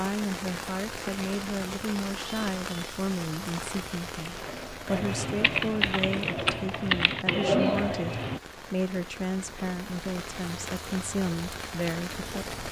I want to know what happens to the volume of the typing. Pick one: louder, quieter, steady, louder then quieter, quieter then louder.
louder.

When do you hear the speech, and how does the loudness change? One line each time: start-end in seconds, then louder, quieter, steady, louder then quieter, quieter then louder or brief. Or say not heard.
0.0-12.6 steady.